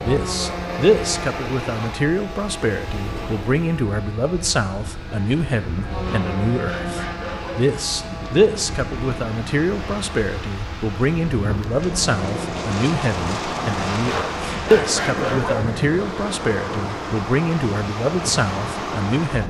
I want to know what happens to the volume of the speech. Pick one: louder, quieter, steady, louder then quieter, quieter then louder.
steady.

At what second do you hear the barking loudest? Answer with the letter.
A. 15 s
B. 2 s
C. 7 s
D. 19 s
A.